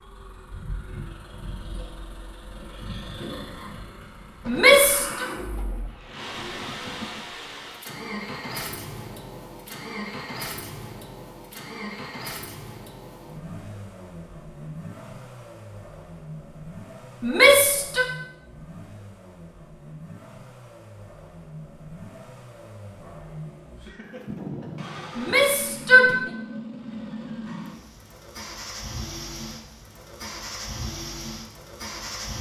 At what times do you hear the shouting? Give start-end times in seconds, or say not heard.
4.5-5.2, 17.2-18.1, 25.1-26.1.